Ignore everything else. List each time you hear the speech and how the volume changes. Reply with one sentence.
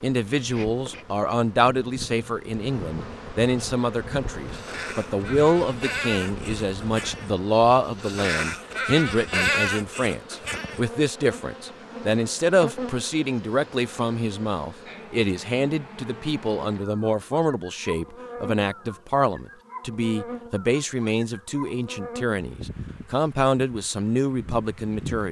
The speech can be heard from 0.0 to 25.2 s, at a steady volume.